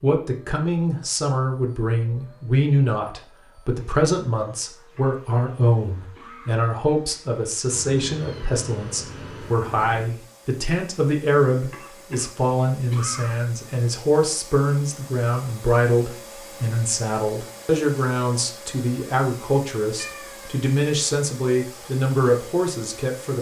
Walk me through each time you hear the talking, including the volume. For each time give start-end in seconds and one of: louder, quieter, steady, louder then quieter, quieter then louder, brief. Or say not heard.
0.0-23.3 steady.